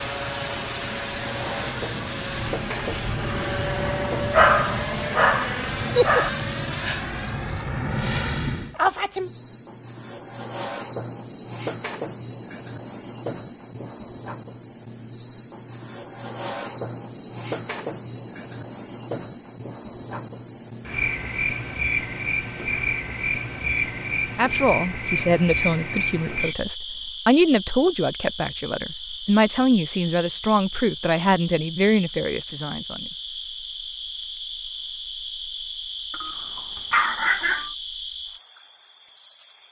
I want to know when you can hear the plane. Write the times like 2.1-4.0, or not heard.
0.0-8.8.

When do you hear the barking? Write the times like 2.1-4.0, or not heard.
4.3-6.3, 36.1-37.7.